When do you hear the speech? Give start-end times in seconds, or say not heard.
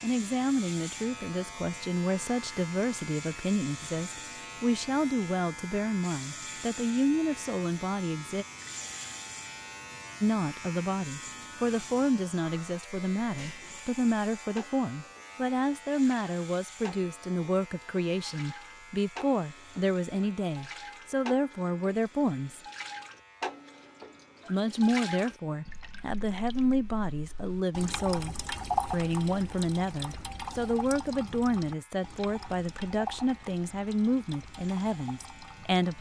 0.0-8.4, 10.2-22.6, 24.4-35.9.